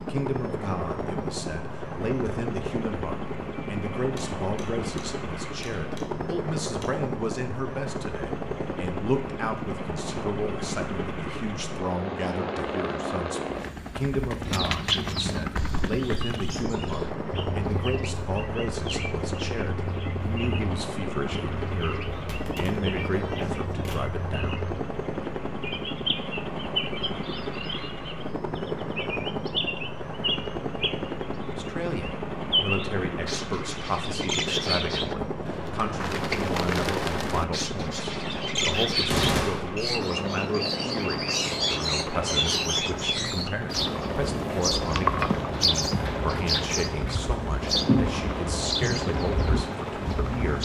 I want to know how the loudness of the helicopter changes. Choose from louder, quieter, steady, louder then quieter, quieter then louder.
steady.